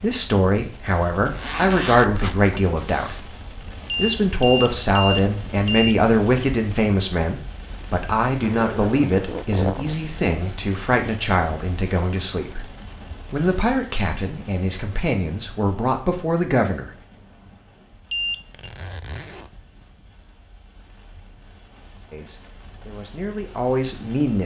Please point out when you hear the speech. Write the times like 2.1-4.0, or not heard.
0.0-3.4, 4.0-12.7, 13.3-16.9, 22.1-24.4.